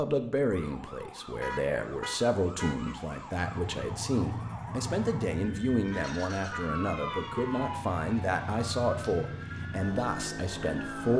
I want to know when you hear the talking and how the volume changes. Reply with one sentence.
You can hear the talking from 0.0 to 11.1 s, at a steady volume.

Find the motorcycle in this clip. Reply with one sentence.
You can hear the motorcycle from 3.4 to 11.1 s.